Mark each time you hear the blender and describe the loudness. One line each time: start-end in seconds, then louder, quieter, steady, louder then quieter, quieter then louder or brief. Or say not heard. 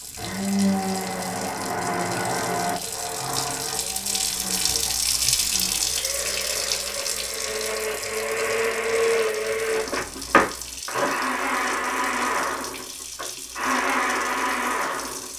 0.1-15.3 quieter then louder.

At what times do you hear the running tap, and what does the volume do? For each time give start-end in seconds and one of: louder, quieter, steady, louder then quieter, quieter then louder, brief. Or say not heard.
0.0-15.3 louder then quieter.